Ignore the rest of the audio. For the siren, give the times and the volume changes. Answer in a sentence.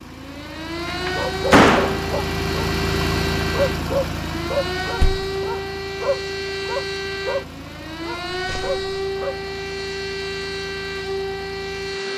The siren can be heard from 0.0 to 12.1 s, at a steady volume.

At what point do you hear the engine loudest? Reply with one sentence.
The volume of the engine peaks at 3 seconds.